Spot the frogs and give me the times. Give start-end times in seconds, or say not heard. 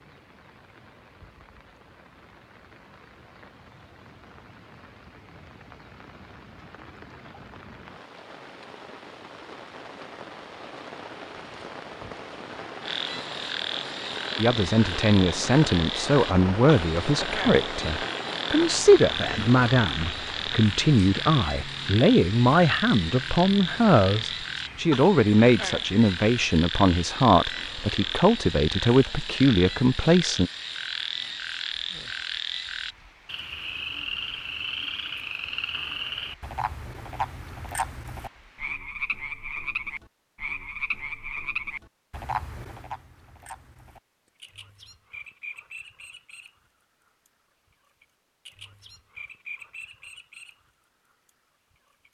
12.8-52.0.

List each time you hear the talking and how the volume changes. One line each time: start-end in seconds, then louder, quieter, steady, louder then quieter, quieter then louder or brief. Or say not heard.
14.3-30.5 steady.